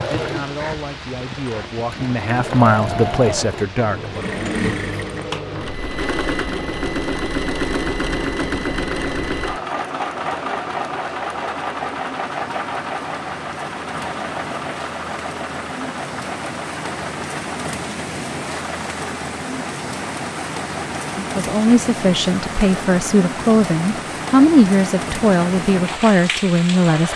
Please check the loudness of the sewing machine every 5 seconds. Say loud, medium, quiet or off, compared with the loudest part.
loud, loud, loud, medium, medium, medium.